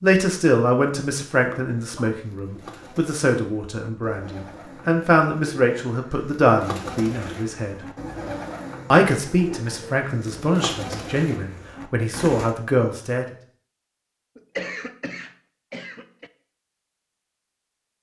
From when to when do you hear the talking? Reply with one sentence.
You can hear the talking from 0.0 to 7.8 s and from 8.9 to 13.2 s.